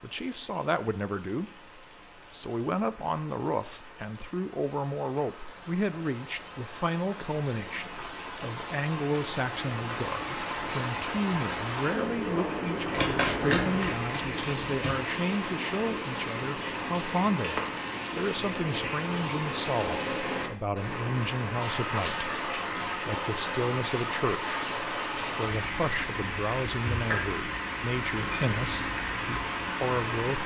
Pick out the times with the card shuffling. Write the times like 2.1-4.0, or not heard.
12.9-14.9.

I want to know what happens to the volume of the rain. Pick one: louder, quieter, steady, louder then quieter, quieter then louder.
louder.